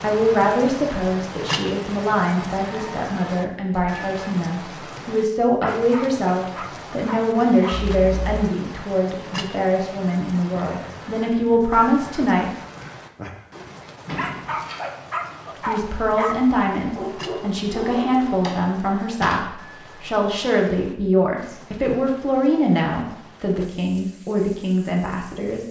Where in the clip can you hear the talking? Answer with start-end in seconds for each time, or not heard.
0.0-12.5, 15.7-25.6.